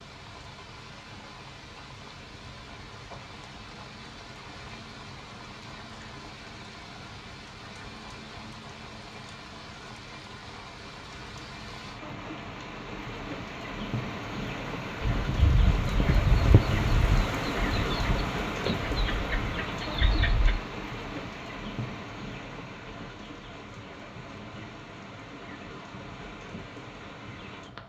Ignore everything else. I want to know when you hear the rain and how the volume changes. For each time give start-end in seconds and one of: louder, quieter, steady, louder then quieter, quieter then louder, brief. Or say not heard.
0.0-27.8 louder then quieter.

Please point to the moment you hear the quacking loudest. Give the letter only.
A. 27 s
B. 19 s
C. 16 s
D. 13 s
C.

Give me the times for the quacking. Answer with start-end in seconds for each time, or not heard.
15.0-20.6.